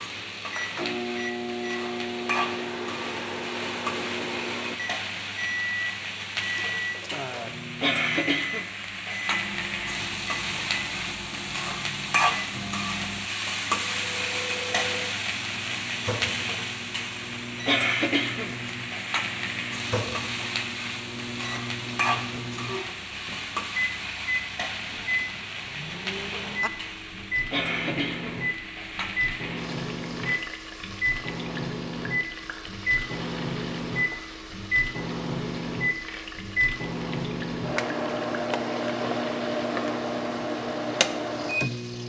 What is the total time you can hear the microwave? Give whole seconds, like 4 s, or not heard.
42 s.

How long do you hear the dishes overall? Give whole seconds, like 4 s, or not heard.
not heard.